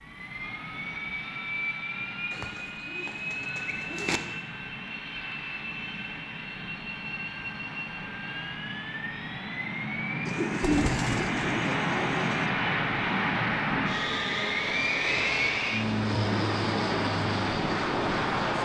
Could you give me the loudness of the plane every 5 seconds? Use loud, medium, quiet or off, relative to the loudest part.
medium, medium, loud, loud.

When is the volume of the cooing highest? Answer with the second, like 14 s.
11 s.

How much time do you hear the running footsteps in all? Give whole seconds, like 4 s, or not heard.
not heard.